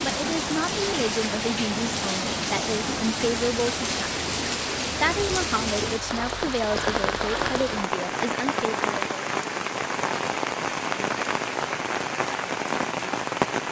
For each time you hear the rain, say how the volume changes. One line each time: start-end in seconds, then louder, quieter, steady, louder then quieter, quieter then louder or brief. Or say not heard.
0.0-13.6 steady.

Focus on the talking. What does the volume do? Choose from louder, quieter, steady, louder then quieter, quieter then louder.
steady.